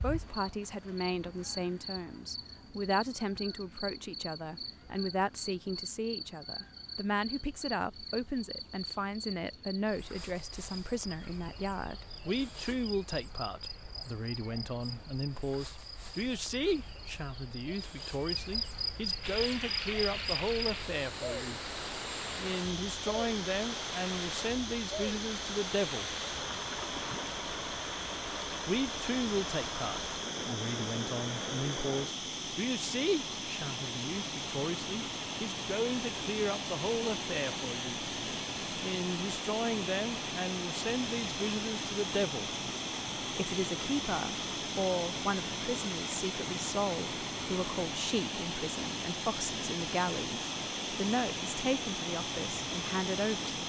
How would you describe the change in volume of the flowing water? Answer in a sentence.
The loudness of the flowing water stays about the same.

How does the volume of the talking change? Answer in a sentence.
The volume of the talking stays about the same.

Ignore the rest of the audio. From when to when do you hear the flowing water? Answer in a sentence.
The flowing water can be heard from 19.2 to 53.6 s.